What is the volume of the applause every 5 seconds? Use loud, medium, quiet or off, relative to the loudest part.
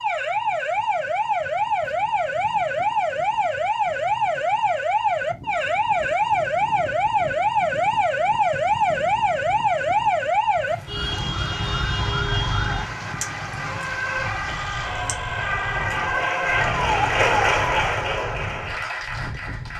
off, off, medium, loud.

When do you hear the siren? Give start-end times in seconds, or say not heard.
0.0-17.9.